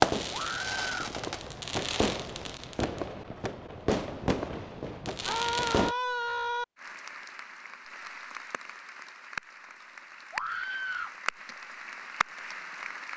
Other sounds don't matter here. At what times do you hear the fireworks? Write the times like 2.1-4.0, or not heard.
0.0-6.0.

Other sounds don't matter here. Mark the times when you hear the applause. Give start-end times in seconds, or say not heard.
6.8-13.1.